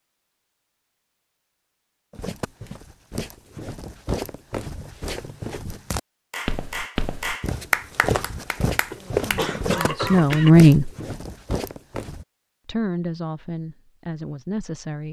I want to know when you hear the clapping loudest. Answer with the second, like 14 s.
8 s.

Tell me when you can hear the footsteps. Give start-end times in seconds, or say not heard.
2.1-12.2.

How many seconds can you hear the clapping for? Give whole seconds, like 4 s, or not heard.
4 s.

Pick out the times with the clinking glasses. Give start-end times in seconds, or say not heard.
not heard.